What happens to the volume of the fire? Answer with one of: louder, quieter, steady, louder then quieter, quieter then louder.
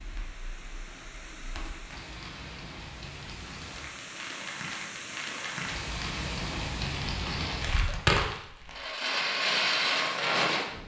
louder.